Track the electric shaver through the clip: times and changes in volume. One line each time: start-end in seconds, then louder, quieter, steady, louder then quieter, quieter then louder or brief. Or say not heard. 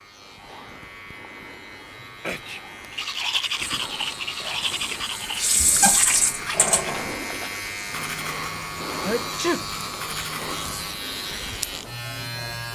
0.0-12.6 louder.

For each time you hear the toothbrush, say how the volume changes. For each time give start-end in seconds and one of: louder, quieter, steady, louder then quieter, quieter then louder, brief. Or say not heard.
2.9-10.9 quieter.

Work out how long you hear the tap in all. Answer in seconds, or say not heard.
4 s.